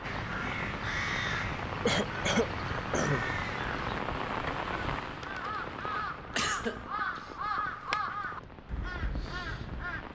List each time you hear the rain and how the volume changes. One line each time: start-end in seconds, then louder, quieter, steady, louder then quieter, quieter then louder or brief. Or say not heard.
0.0-10.1 quieter.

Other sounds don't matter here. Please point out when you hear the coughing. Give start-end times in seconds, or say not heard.
1.9-3.2, 6.3-7.2.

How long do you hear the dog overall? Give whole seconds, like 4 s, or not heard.
not heard.